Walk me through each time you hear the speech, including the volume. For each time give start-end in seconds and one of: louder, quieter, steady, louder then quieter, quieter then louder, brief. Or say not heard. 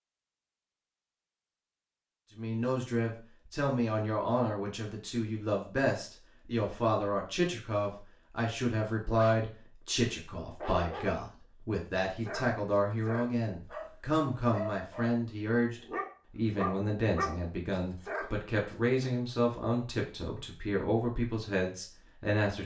2.4-22.6 steady.